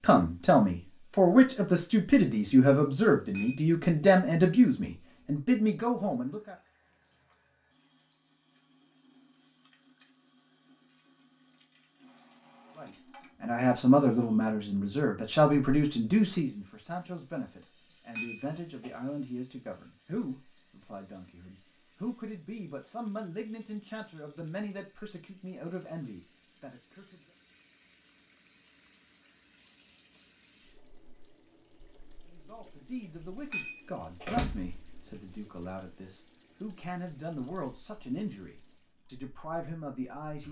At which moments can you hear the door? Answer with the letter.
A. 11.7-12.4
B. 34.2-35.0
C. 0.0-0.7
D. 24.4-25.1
B.